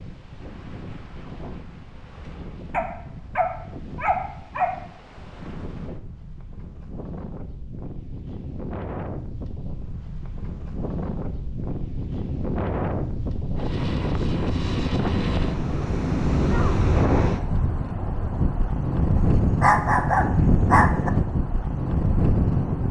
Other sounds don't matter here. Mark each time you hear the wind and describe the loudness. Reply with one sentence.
The wind can be heard from 0.0 to 22.8 s, getting louder.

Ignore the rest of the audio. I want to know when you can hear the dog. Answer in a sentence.
You can hear the dog from 2.7 to 4.8 s and from 19.6 to 21.1 s.